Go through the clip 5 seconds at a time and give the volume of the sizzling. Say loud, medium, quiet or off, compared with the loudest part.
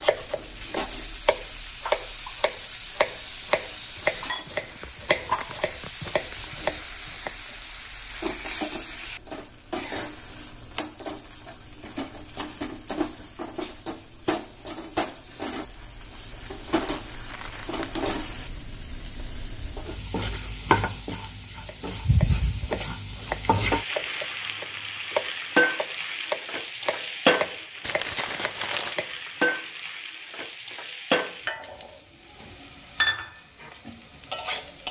medium, medium, medium, medium, loud, loud, loud.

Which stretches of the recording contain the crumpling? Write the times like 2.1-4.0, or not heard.
4.5-6.5, 16.6-18.6, 27.8-28.9.